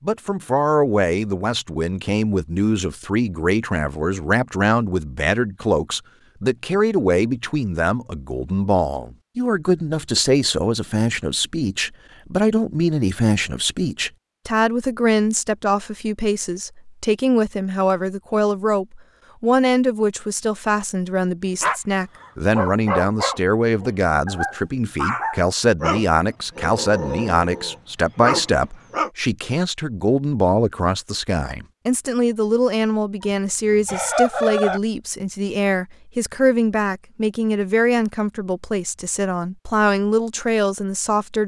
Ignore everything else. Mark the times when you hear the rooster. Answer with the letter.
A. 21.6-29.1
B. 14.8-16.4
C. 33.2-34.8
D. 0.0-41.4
C.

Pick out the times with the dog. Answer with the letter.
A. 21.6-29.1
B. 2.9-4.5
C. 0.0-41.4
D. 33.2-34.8
A.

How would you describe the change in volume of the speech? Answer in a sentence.
The loudness of the speech stays about the same.